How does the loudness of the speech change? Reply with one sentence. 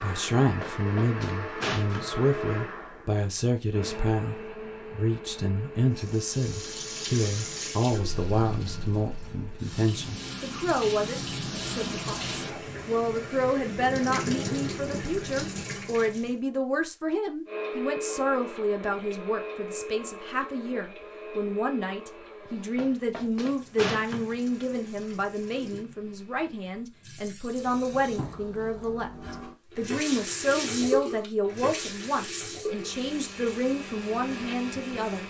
The volume of the speech stays about the same.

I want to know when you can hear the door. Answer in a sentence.
You can hear the door from 0.6 to 2.2 s and from 22.4 to 24.4 s.